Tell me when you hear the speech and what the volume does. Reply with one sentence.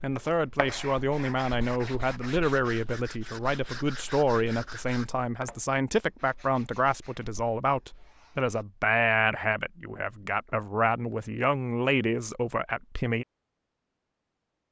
The speech can be heard from 0.0 to 13.2 s, at a steady volume.